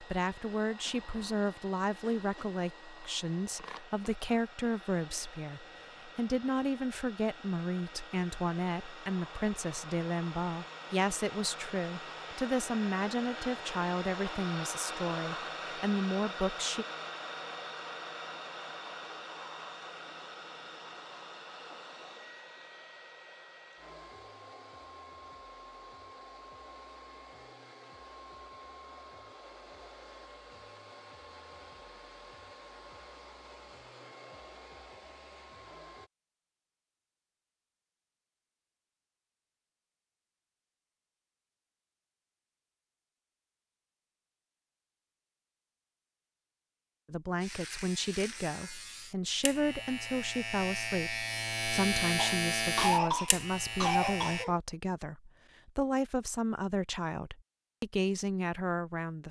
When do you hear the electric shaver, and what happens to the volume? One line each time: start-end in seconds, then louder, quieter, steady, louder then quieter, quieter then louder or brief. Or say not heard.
47.4-54.5 louder then quieter.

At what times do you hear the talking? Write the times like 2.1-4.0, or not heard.
0.0-16.9, 47.1-59.2.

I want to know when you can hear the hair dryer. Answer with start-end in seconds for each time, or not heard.
0.0-36.1.